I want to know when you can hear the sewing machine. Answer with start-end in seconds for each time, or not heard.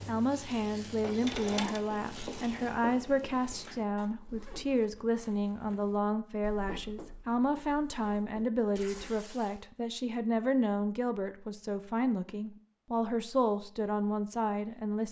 0.0-1.9.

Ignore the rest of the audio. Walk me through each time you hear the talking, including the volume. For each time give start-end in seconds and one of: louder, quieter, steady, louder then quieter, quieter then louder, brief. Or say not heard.
0.1-15.0 steady.